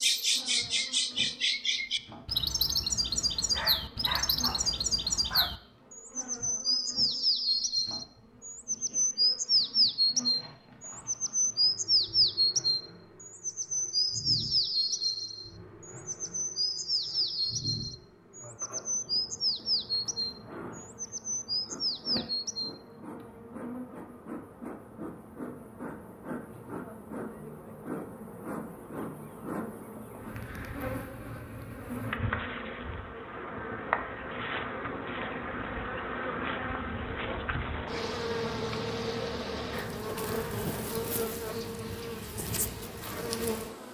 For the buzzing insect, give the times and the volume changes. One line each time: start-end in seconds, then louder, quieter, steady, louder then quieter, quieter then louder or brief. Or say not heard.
0.0-43.8 louder.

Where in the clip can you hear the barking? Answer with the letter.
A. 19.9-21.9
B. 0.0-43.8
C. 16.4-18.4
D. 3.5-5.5
D.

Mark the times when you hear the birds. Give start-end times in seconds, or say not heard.
0.0-22.8.